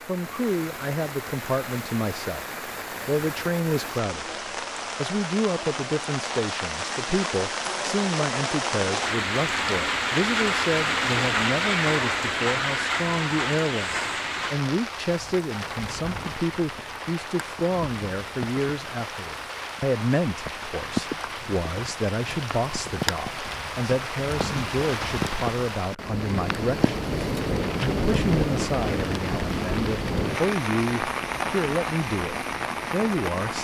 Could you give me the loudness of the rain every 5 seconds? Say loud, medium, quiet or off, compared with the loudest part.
medium, loud, loud, medium, medium, loud, loud.